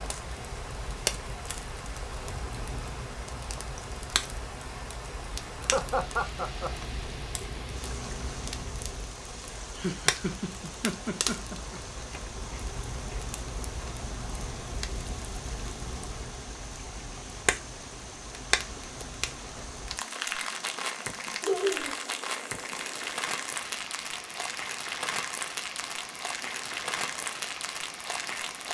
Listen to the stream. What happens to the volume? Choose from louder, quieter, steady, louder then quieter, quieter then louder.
steady.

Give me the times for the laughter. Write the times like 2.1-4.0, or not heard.
5.6-6.8, 9.8-11.8, 21.4-21.9.